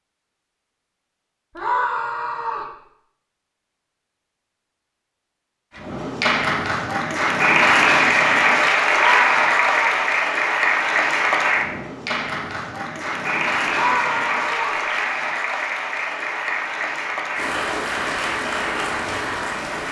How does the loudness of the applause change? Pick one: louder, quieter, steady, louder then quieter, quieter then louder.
quieter.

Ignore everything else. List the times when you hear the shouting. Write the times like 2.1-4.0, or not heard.
1.6-2.7, 8.9-10.0, 13.7-14.8.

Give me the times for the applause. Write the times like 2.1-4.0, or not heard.
5.8-19.8.